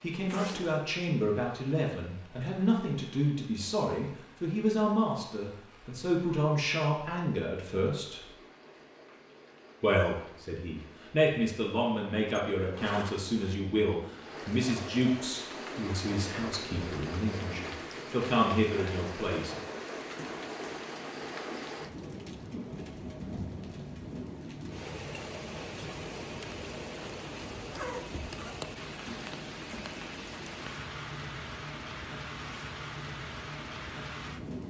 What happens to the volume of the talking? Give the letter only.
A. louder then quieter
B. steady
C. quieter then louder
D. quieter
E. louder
B.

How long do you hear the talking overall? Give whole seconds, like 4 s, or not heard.
18 s.